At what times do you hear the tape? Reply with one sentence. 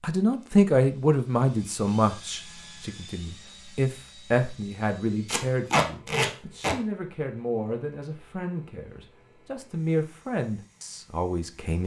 The tape can be heard from 5.2 to 6.8 s.